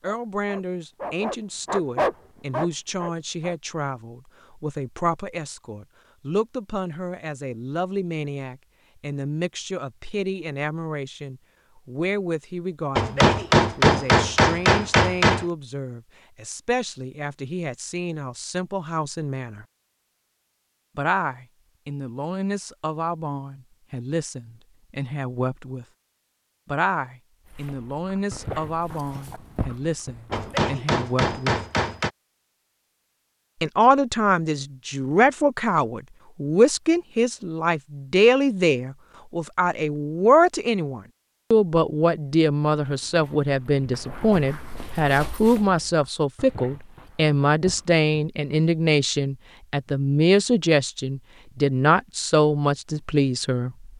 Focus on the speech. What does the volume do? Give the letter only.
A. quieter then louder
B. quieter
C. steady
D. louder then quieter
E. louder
E.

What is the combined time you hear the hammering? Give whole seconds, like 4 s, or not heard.
4 s.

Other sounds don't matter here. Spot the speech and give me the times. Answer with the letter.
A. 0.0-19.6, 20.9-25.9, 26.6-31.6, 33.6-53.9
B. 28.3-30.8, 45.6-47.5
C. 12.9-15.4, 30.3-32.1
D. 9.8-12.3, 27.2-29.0
A.